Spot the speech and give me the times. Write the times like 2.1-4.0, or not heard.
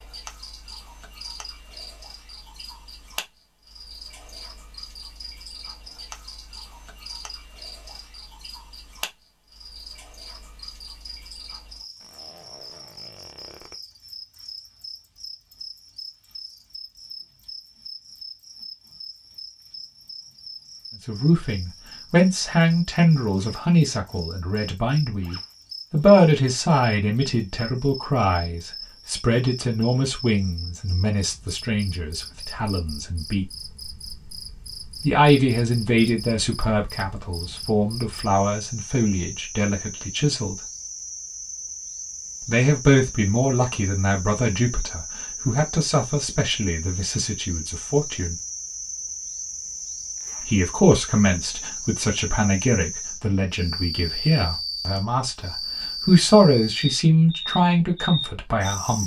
21.1-33.5, 35.0-40.5, 42.5-48.4, 50.4-59.0.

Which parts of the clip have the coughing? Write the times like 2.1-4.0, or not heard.
not heard.